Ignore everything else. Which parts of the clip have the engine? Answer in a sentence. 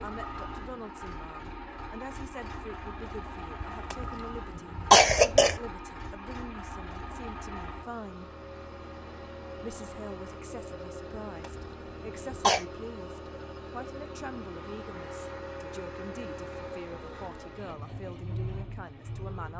The engine can be heard from 0.0 to 19.5 s.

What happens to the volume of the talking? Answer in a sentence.
The volume of the talking stays about the same.